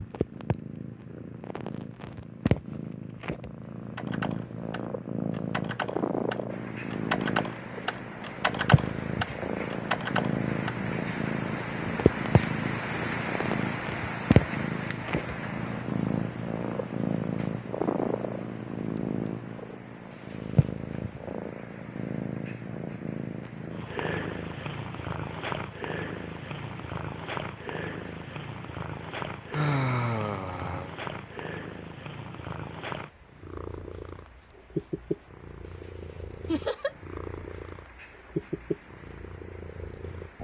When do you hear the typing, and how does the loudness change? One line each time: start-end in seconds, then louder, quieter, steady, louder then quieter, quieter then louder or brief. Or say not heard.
4.0-10.8 louder.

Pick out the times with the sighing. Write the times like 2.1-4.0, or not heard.
29.5-30.9.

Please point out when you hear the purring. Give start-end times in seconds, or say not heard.
0.0-40.4.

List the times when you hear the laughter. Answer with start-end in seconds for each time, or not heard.
36.5-37.0.